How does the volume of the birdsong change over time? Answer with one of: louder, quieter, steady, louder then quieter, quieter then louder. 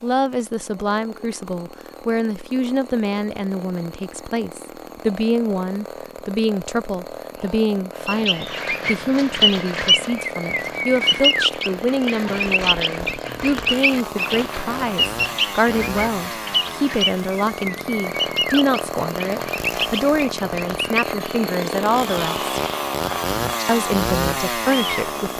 quieter.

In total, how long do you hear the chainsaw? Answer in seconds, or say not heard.
25 s.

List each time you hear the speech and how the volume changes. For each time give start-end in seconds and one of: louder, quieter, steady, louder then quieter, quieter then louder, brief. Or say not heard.
0.0-22.4 steady
23.6-25.3 brief.